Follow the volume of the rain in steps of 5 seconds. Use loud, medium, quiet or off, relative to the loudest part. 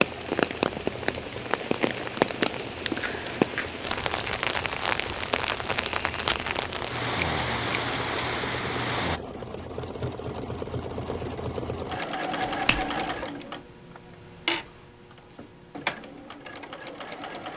loud, loud, off, off.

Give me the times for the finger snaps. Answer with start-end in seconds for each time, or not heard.
3.0-3.8, 7.2-7.8, 12.4-13.2.